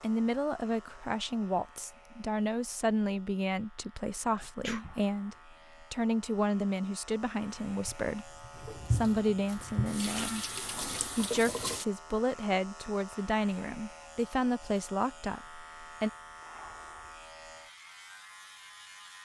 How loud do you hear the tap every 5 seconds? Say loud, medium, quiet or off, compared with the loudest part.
off, loud, loud, off.